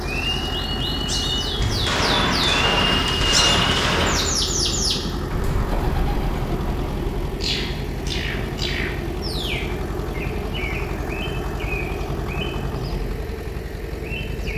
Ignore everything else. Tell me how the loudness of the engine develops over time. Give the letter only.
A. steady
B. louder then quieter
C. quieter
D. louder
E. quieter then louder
A.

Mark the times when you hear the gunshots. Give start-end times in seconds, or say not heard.
1.6-4.3.